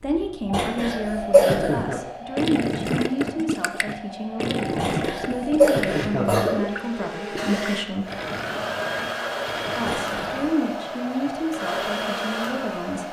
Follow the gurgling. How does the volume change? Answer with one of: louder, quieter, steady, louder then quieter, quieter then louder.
quieter.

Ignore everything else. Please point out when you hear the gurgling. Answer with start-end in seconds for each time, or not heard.
1.9-10.5.